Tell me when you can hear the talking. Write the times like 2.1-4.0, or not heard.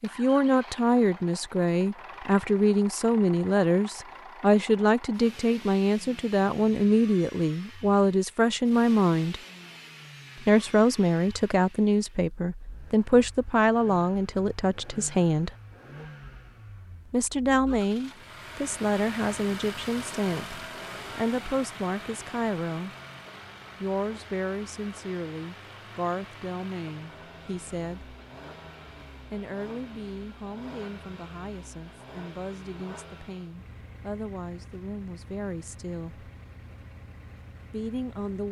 0.0-9.4, 10.4-15.6, 17.1-22.9, 23.8-28.1, 29.3-36.3, 37.7-38.4.